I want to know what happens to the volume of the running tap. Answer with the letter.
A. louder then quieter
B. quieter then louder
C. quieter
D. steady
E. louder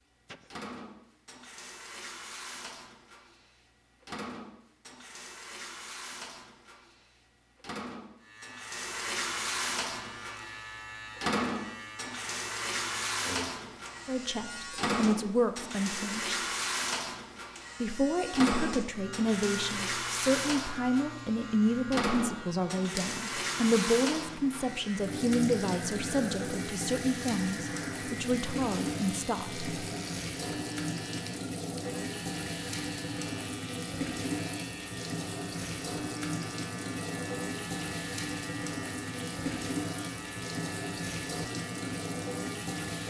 E.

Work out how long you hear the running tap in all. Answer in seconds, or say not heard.
43 s.